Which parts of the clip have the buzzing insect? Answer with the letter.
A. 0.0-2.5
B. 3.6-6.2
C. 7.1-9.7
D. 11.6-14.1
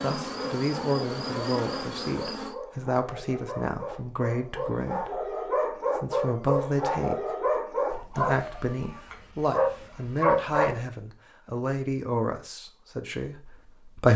A.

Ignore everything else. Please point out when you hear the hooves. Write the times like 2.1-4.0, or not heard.
not heard.